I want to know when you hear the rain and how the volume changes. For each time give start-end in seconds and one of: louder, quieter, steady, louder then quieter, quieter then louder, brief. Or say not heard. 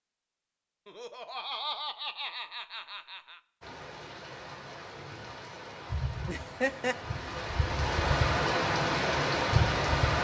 3.6-10.2 louder.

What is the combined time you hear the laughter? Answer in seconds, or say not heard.
3 s.